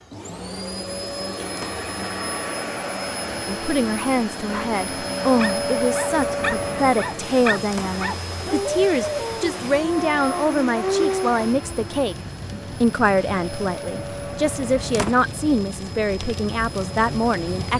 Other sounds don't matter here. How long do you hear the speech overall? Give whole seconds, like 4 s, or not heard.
14 s.